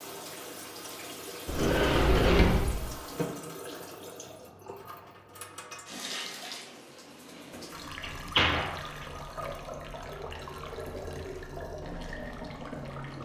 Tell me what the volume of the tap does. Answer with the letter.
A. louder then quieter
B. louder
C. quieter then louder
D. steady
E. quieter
D.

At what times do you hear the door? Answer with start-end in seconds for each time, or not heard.
1.4-2.9, 7.5-9.1.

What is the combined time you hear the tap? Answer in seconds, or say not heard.
13 s.